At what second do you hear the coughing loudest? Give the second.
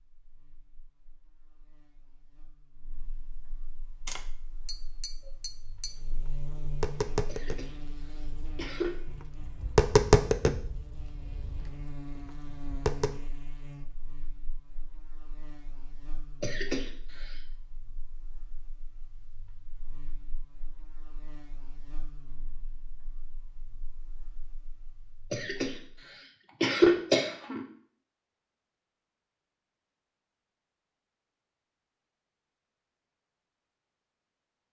27 s.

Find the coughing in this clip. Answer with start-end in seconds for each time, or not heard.
7.2-9.0, 16.4-17.4, 25.3-27.6.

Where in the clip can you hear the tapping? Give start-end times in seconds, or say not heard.
4.0-13.2.